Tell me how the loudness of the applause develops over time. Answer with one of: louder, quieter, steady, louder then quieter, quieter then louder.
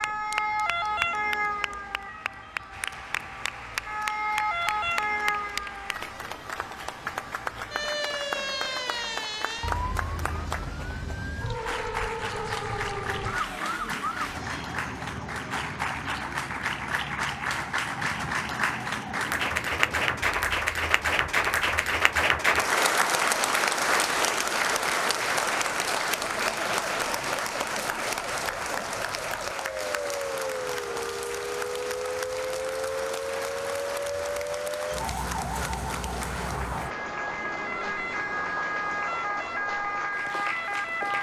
louder then quieter.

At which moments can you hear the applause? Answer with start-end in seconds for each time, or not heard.
0.0-41.1.